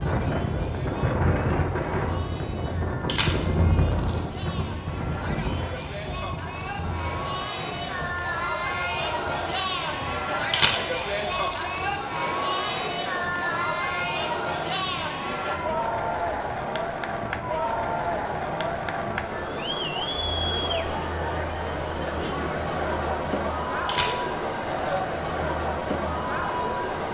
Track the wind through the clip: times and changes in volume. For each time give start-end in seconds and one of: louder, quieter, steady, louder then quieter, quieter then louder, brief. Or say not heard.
0.0-27.0 quieter.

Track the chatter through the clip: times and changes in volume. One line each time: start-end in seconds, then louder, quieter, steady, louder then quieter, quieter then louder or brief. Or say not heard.
0.0-27.0 louder.